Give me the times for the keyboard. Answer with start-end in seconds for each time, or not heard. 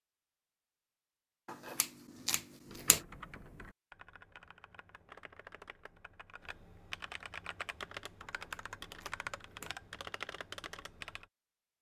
2.6-11.2.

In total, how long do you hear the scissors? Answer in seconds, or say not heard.
3 s.